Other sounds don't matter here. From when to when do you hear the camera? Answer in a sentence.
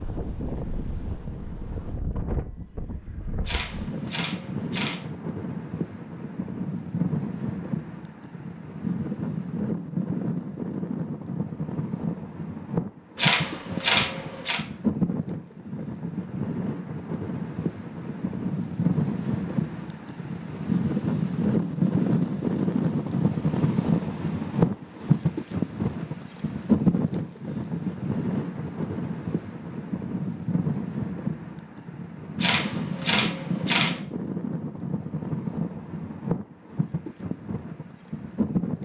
You can hear the camera from 3.5 to 5.0 s, from 13.2 to 14.6 s and from 32.4 to 34.0 s.